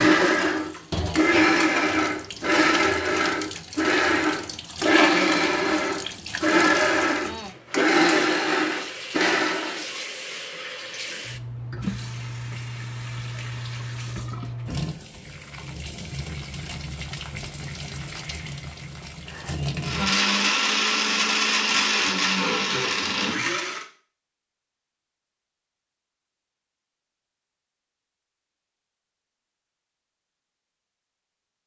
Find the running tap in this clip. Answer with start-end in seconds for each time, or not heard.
0.0-20.2.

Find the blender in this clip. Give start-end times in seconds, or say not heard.
0.0-9.8, 19.3-23.9.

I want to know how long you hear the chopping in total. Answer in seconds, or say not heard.
not heard.